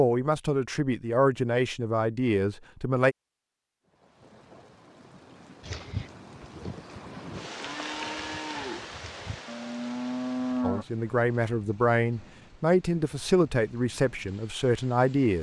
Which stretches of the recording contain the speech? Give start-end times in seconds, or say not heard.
0.0-3.1, 10.6-15.3.